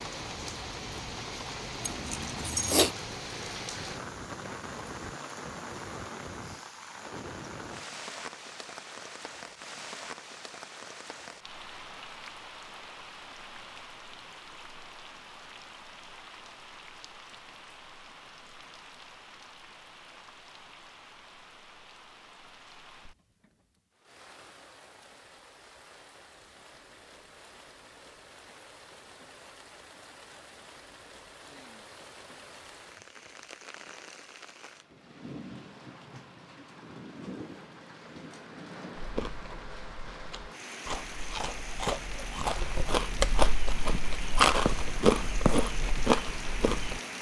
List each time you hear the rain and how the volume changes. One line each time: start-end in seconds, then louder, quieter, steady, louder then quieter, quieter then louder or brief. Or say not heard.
0.0-47.1 quieter then louder.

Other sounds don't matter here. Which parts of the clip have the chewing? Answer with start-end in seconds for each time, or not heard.
39.0-47.0.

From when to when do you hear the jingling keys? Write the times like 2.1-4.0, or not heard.
1.8-2.9.